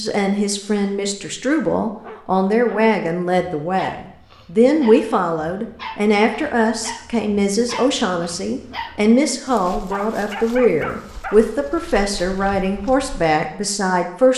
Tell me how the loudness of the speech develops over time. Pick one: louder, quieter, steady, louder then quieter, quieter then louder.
steady.